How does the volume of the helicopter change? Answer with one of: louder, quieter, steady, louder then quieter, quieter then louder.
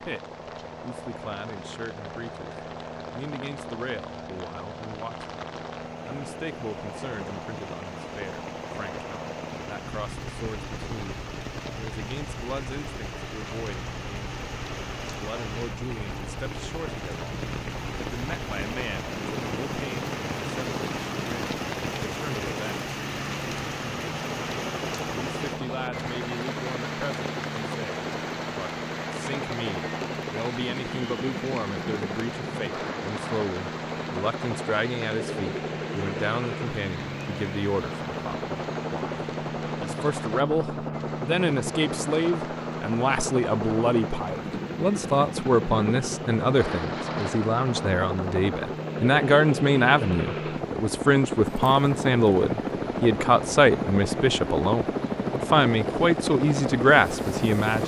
louder.